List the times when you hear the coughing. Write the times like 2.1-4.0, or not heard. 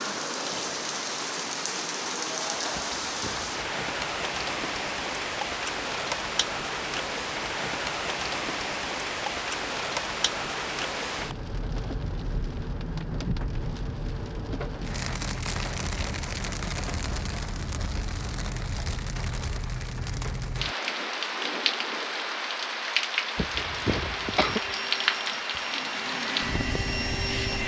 2.8-3.5, 23.4-24.6.